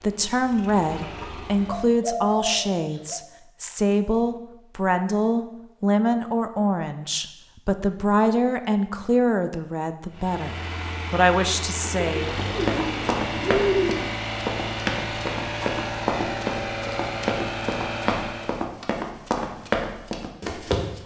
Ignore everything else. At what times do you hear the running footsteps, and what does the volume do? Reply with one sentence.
The running footsteps can be heard from 12.4 to 21.0 s, at a steady volume.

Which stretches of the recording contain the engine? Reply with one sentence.
You can hear the engine from 0.0 to 1.9 s and from 10.1 to 18.7 s.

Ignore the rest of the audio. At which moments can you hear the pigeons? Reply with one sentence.
The pigeons can be heard from 1.1 to 3.2 s and from 11.8 to 14.0 s.